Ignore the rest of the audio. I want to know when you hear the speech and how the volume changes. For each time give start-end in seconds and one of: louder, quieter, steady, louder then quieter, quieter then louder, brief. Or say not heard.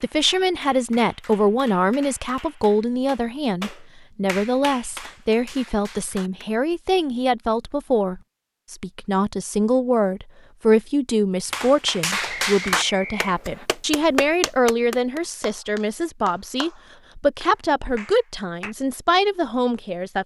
0.0-20.2 steady.